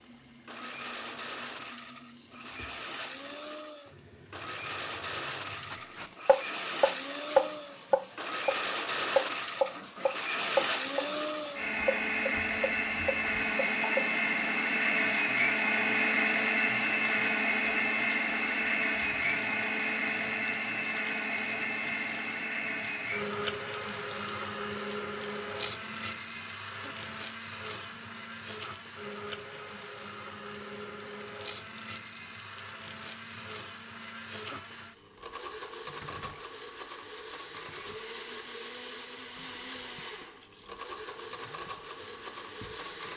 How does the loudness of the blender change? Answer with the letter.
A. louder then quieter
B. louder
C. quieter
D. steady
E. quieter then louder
A.